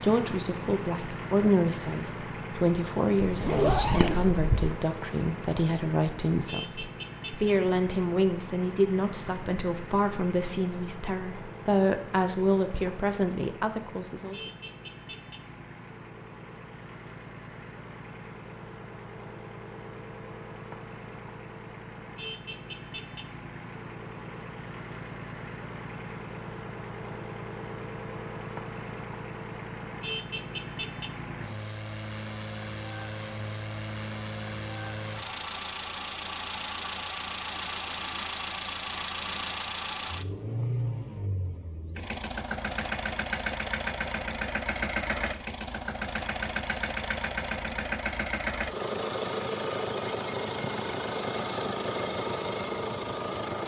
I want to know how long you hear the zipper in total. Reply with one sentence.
The zipper can be heard for 2 seconds in total.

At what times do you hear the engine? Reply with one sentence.
You can hear the engine from 0.0 to 53.6 s.